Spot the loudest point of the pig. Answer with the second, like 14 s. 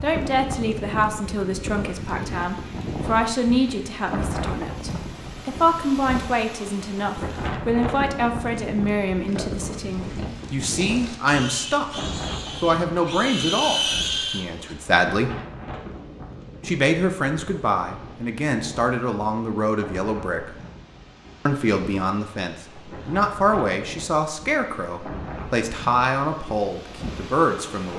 14 s.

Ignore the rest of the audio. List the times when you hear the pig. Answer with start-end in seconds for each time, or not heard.
9.2-14.8.